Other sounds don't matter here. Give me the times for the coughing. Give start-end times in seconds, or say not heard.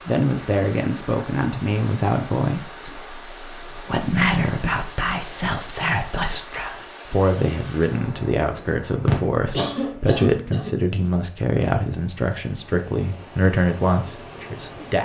9.1-10.8.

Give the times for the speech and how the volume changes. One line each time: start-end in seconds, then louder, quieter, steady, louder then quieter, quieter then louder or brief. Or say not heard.
0.1-14.9 steady.